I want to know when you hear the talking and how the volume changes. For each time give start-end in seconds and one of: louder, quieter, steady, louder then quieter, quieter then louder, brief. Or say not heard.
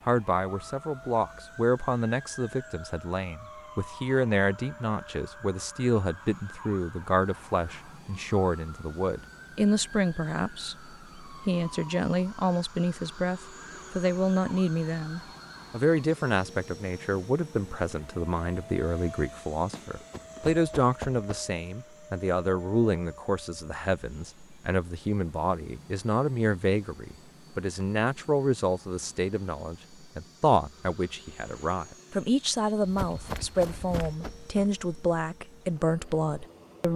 0.1-36.9 steady.